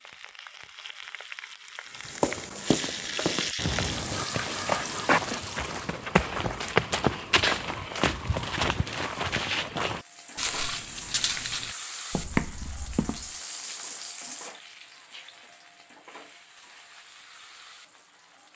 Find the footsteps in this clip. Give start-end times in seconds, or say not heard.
2.0-13.3.